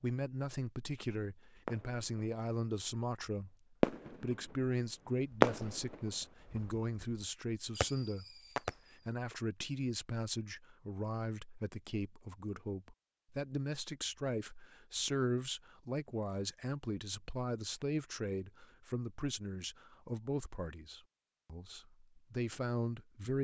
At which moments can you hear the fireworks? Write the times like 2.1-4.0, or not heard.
1.6-2.3, 3.8-4.7, 5.3-9.1.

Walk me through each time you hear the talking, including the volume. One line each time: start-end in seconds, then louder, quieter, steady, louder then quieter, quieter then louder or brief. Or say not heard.
0.0-23.3 steady.